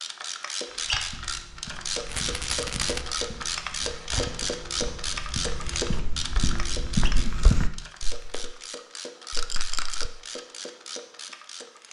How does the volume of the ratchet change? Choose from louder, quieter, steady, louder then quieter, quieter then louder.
quieter.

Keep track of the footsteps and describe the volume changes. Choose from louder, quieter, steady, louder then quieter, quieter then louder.
louder.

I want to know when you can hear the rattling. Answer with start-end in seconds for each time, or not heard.
2.0-3.0, 9.3-10.1.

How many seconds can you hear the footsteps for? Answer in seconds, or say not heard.
8 s.